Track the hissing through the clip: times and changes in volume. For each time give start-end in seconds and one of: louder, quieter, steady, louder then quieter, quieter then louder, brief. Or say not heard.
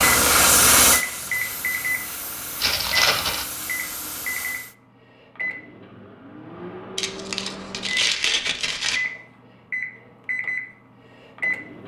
0.0-4.8 quieter.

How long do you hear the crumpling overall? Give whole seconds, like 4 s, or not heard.
3 s.